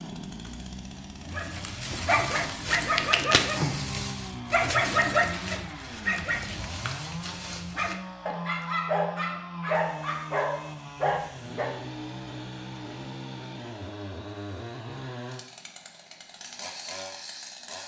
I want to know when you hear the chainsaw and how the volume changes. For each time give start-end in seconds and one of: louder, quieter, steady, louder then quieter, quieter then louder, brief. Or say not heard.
0.0-17.8 steady.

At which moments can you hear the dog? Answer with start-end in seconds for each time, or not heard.
1.3-11.8.